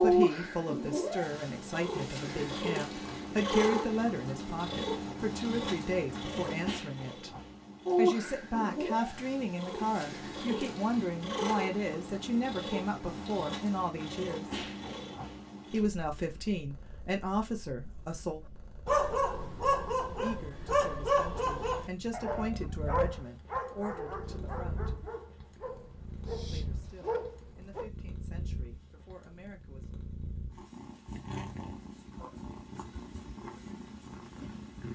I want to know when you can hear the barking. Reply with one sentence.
You can hear the barking from 18.9 to 27.9 s.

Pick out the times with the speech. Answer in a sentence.
The speech can be heard from 0.0 to 7.3 s, from 8.0 to 14.6 s, from 15.7 to 18.4 s, from 20.1 to 24.9 s and from 26.4 to 29.9 s.